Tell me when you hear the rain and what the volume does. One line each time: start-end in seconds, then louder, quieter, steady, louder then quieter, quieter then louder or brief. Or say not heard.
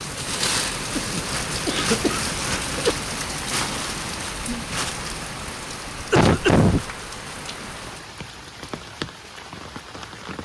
0.0-10.4 quieter.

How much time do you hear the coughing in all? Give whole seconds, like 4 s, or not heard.
3 s.